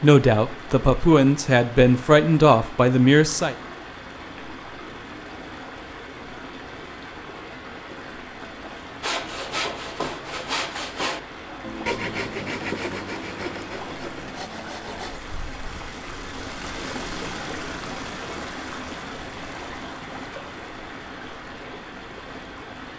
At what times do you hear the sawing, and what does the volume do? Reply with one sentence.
The sawing can be heard from 9.0 to 15.2 s, getting quieter.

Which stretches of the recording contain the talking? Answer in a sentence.
The talking can be heard from 0.0 to 3.5 s.